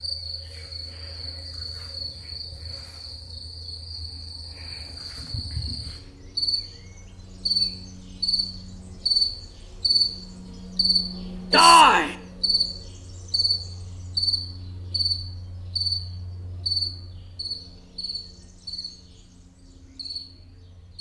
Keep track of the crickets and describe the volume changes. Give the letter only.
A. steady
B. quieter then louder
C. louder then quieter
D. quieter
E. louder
C.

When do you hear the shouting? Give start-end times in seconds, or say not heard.
11.5-12.2.